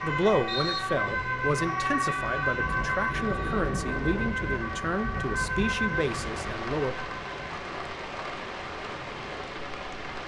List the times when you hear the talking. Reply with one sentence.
The talking can be heard from 0.0 to 7.0 s.